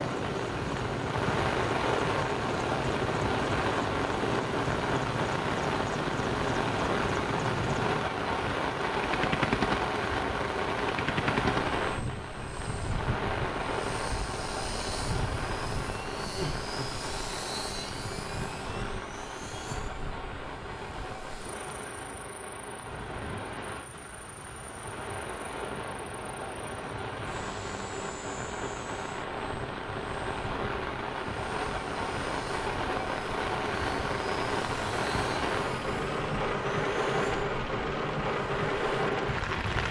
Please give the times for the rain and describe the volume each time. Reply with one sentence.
The rain can be heard from 0.0 to 39.8 s, getting quieter then louder.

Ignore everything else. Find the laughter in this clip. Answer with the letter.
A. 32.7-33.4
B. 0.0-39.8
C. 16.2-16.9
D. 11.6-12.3
C.